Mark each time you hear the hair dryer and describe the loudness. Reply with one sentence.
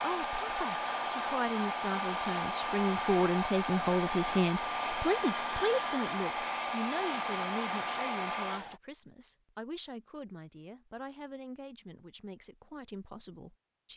The hair dryer can be heard from 0.0 to 8.8 s, at a steady volume.